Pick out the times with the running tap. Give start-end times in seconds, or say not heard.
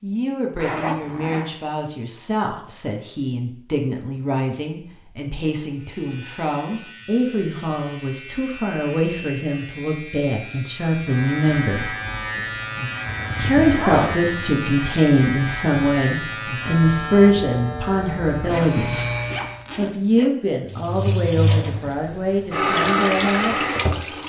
20.6-24.2.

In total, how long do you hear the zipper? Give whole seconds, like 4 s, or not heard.
4 s.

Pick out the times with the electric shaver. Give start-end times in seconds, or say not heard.
5.7-19.7.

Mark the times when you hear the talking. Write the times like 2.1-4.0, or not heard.
0.0-11.9, 13.3-19.0, 19.8-23.6.